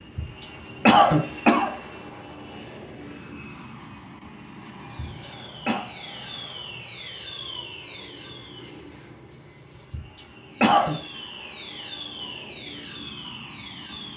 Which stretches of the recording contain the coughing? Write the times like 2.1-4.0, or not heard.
0.1-1.7, 5.0-5.8, 9.9-10.9.